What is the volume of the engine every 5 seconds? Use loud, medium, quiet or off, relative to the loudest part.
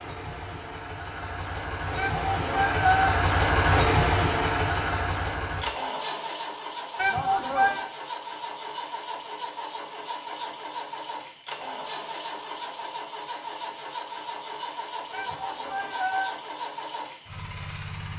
loud, medium, medium, medium.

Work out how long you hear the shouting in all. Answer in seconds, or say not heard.
3 s.